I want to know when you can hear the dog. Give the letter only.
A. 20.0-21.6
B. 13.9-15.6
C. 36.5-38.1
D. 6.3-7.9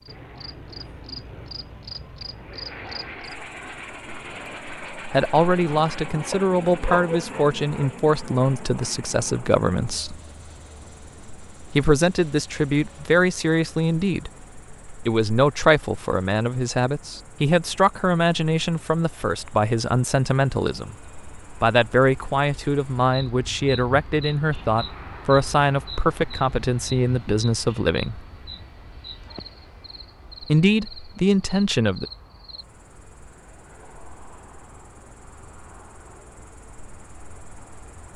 D.